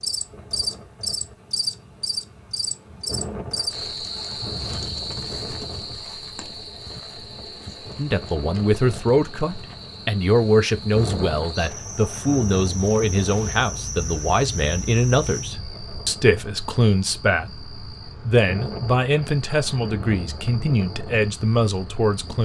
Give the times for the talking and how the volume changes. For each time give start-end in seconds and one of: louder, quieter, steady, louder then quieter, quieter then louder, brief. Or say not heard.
8.0-22.4 steady.